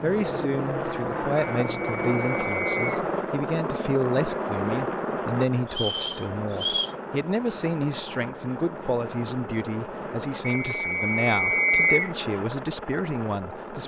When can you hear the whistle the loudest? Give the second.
12 s.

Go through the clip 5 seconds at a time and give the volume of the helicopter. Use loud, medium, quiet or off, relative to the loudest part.
loud, medium, medium.